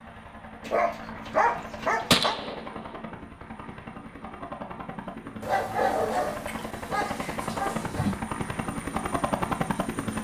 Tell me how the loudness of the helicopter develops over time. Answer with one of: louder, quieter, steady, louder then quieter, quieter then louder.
louder.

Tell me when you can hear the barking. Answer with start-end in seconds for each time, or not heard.
0.6-2.4, 5.4-8.2.